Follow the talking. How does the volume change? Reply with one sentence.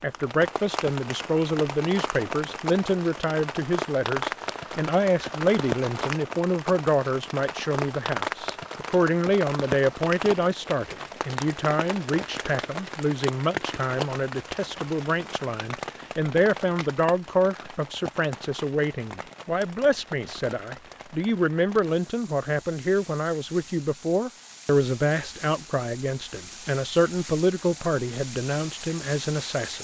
The loudness of the talking stays about the same.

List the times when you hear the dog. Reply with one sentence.
The dog can't be heard in this clip.